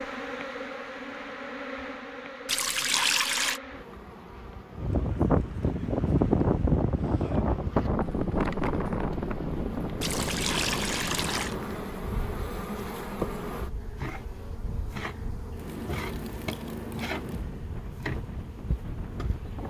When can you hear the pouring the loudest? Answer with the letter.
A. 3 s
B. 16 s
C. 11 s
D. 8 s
A.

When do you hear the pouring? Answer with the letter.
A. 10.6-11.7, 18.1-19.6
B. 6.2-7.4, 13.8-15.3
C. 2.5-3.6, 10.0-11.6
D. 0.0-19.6
C.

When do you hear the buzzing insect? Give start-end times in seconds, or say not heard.
0.0-19.6.